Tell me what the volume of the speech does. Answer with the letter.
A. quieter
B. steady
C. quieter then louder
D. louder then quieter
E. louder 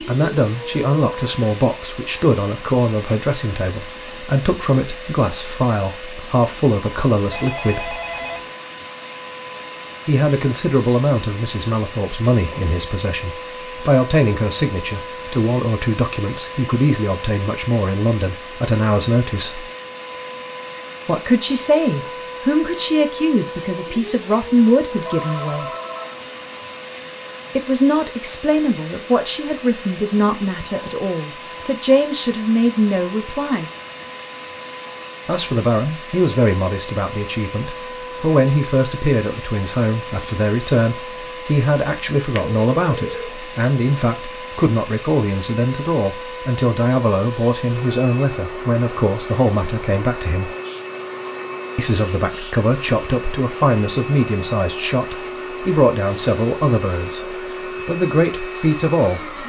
B.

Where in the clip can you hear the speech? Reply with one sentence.
The speech can be heard from 0.1 to 8.0 s, from 10.1 to 19.6 s, from 21.1 to 25.6 s, from 27.6 to 33.7 s, from 35.2 to 50.5 s and from 51.8 to 59.4 s.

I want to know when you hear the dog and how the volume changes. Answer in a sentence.
The dog can't be heard in this clip.